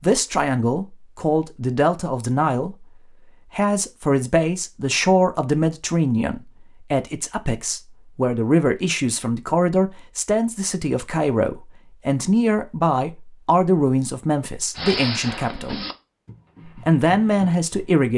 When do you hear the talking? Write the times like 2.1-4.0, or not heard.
0.0-2.9, 3.5-15.8, 16.6-18.1.